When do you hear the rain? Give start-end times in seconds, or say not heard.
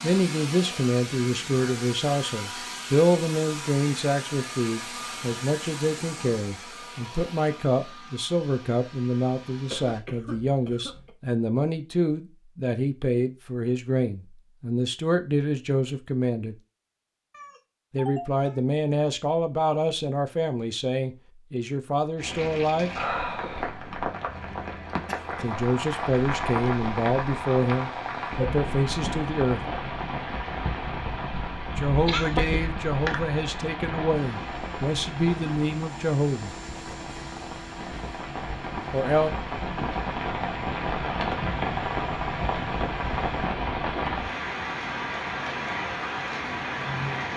22.1-47.3.